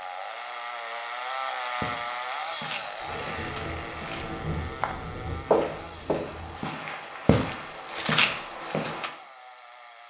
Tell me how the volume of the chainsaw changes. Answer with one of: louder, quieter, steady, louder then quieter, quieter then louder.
quieter.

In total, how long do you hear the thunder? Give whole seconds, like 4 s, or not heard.
4 s.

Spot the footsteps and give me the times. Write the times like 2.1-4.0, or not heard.
1.8-9.1.